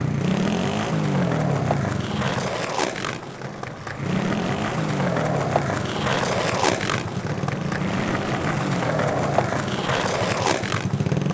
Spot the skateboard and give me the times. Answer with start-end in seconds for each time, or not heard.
0.0-11.3.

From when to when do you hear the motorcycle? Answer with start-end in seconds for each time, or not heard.
0.0-2.5, 4.0-11.3.